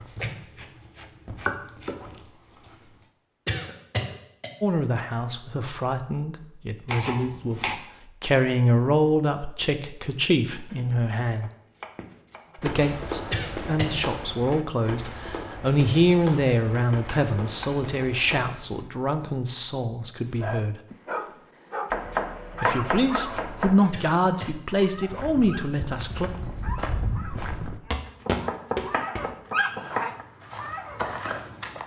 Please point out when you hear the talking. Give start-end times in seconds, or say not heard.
4.6-11.5, 12.6-20.8, 22.6-26.3.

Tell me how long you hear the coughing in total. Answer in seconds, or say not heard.
2 s.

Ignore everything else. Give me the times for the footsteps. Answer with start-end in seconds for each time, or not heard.
11.9-18.9, 24.9-31.8.